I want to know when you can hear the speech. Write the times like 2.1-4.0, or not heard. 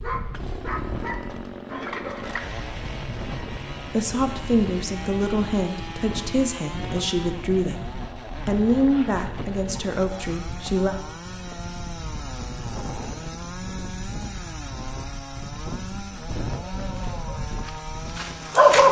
3.9-10.9.